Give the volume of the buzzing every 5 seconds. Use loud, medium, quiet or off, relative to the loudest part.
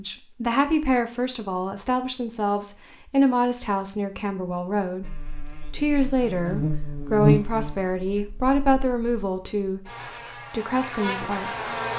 off, loud, loud.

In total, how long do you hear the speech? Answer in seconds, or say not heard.
10 s.